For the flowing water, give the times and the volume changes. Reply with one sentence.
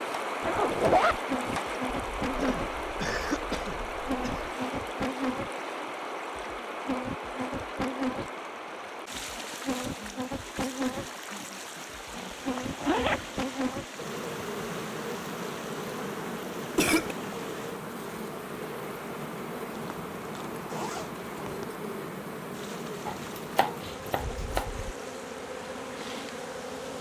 The flowing water can be heard from 0.0 to 26.9 s, getting quieter.